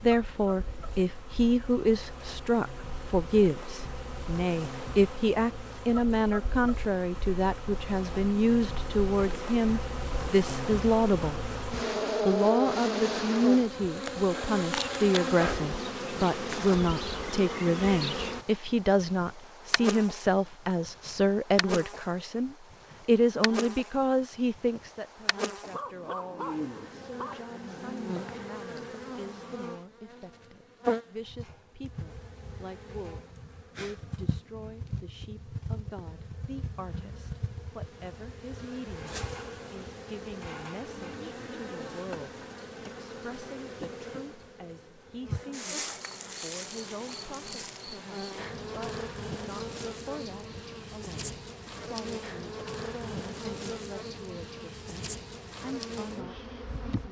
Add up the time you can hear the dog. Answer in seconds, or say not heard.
2 s.